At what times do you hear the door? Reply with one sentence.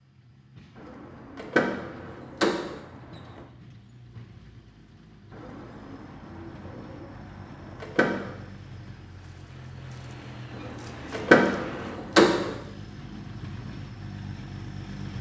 You can hear the door from 1.4 to 2.8 s, from 7.8 to 8.3 s and from 11.1 to 12.6 s.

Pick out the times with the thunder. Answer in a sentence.
You can't hear the thunder here.